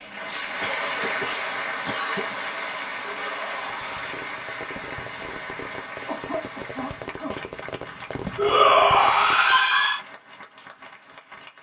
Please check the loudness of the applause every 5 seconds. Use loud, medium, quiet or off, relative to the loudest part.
loud, medium, quiet.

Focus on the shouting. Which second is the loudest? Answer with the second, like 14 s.
9 s.